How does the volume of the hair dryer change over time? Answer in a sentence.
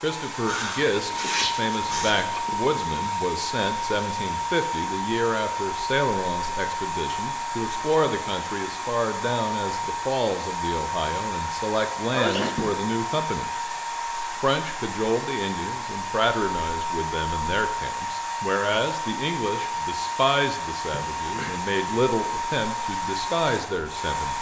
The loudness of the hair dryer stays about the same.